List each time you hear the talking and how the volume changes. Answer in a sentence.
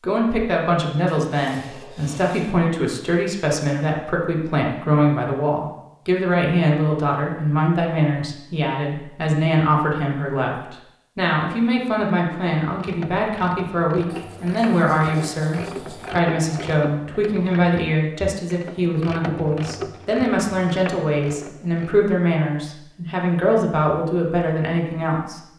You can hear the talking from 0.0 to 25.4 s, at a steady volume.